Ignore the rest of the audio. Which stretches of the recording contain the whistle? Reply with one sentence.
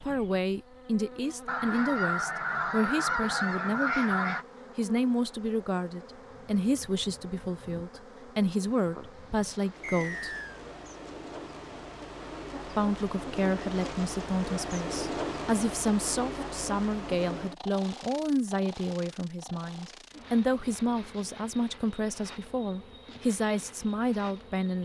You can hear the whistle from 9.8 to 10.6 s.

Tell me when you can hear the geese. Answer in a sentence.
The geese can be heard from 1.4 to 4.5 s.